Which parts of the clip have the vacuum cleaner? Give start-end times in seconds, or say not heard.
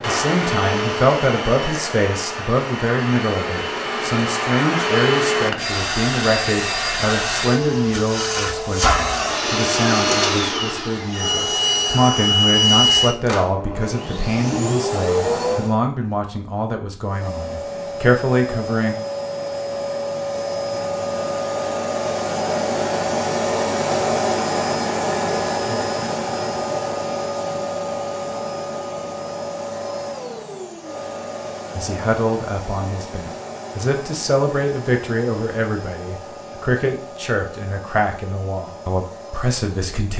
0.0-15.8, 17.0-40.1.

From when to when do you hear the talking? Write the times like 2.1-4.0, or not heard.
0.0-18.9, 31.8-40.1.